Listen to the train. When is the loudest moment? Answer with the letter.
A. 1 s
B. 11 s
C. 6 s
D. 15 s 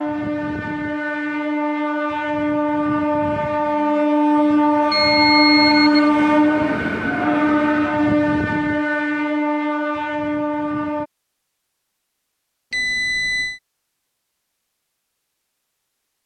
C.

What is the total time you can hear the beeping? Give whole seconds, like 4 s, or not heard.
2 s.